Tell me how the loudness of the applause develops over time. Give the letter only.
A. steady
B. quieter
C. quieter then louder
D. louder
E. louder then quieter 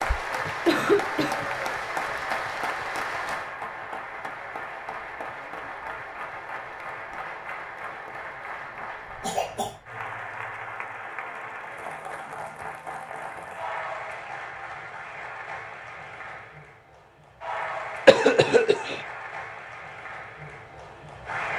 B.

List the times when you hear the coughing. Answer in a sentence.
The coughing can be heard from 0.5 to 1.4 s, from 9.2 to 9.8 s and from 18.1 to 19.0 s.